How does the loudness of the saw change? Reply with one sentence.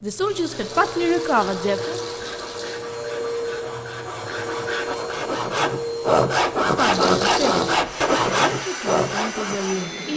The volume of the saw goes up.